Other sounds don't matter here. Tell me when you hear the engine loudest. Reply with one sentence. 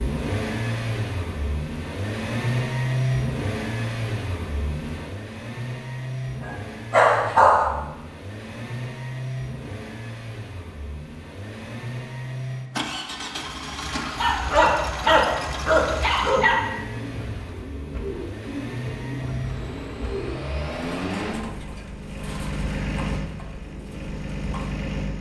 The loudest moment of the engine is at 3 seconds.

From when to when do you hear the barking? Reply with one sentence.
You can hear the barking from 6.4 to 7.8 s and from 14.2 to 16.6 s.